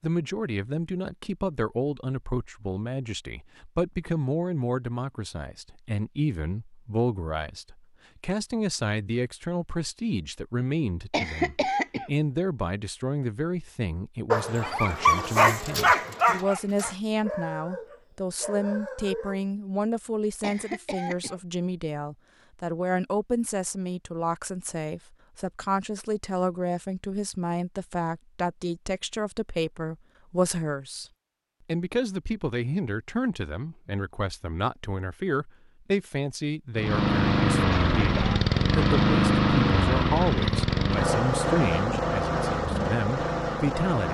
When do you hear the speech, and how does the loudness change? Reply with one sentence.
The speech can be heard from 0.0 to 31.1 s, at a steady volume; and from 31.6 to 44.0 s, at a steady volume.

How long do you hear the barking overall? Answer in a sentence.
The barking can be heard for 5 seconds in total.